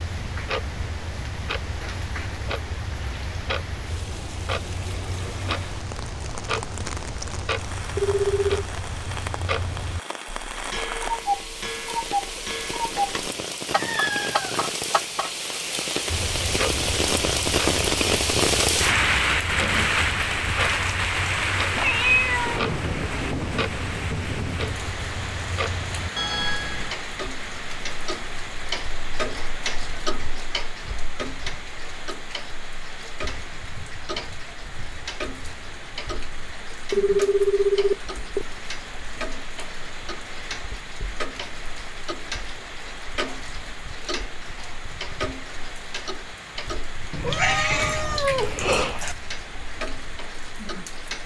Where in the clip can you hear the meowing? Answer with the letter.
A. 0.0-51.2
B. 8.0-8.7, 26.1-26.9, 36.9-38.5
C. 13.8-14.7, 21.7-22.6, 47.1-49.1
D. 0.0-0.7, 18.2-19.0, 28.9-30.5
C.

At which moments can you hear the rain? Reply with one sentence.
The rain can be heard from 0.0 to 51.2 s.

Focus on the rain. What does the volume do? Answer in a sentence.
The loudness of the rain goes up, then down.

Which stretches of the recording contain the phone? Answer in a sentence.
You can hear the phone from 8.0 to 8.7 s, from 26.1 to 26.9 s and from 36.9 to 38.5 s.